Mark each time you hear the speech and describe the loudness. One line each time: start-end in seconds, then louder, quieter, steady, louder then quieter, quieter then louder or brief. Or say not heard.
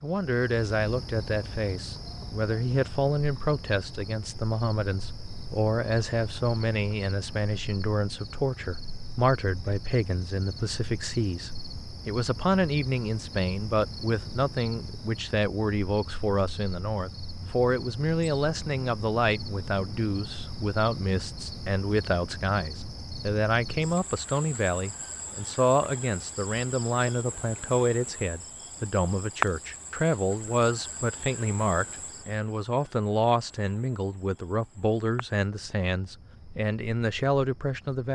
0.0-38.0 steady.